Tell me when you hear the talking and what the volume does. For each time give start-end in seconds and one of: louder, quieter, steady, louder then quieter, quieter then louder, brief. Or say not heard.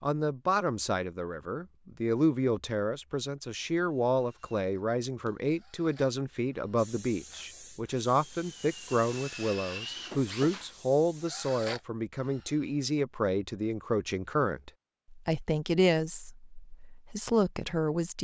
0.0-18.1 steady.